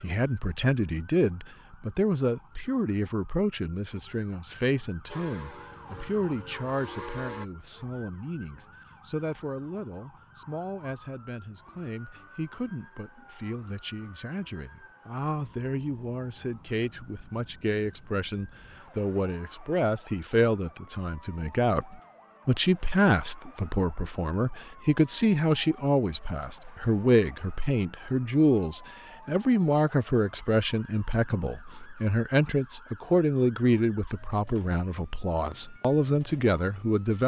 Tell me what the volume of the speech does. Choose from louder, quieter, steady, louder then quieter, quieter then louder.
quieter then louder.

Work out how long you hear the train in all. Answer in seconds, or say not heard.
2 s.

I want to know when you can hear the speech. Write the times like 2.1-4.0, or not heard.
0.0-37.2.